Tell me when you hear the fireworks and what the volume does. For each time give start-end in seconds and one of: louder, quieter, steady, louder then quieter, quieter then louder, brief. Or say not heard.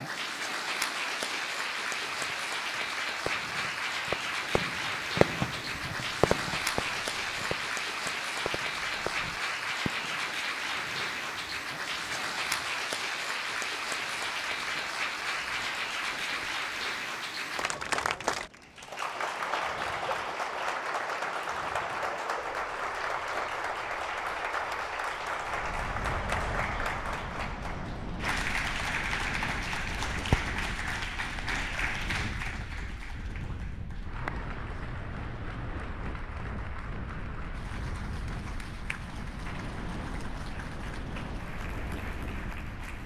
3.2-10.4 louder then quieter.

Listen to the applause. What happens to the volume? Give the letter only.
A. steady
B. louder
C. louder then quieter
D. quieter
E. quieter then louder
D.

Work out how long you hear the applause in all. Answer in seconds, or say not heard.
43 s.